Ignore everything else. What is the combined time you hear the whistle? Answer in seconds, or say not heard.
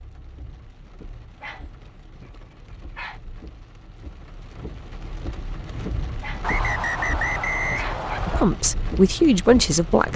2 s.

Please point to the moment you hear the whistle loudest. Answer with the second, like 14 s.
7 s.